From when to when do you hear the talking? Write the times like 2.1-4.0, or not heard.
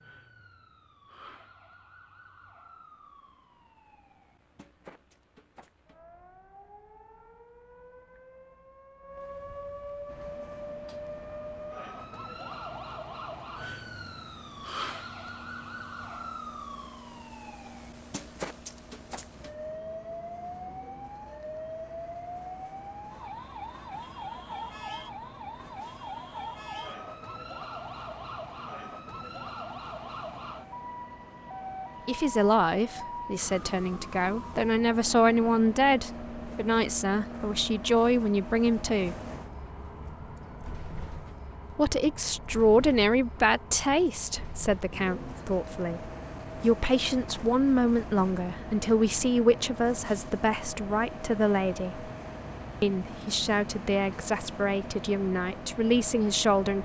32.0-39.1, 41.7-52.1, 52.8-56.7.